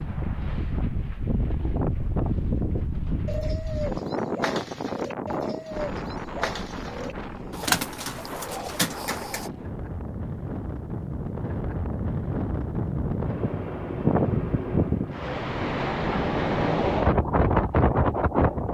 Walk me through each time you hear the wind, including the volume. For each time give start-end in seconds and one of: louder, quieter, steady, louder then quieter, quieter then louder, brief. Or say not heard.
0.0-18.6 quieter then louder.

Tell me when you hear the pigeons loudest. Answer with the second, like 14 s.
8 s.